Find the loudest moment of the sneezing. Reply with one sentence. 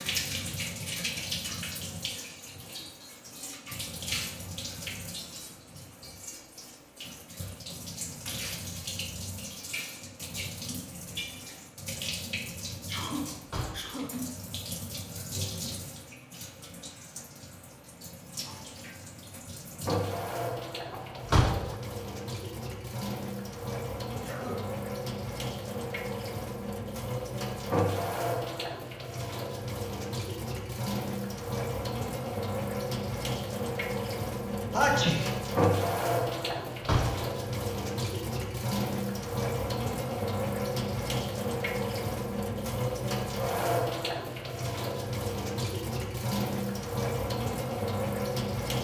The volume of the sneezing peaks at 35 seconds.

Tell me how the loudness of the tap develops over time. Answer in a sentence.
The loudness of the tap goes up.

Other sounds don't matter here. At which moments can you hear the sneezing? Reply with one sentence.
The sneezing can be heard from 12.8 to 14.2 s, from 24.1 to 24.6 s and from 34.7 to 35.3 s.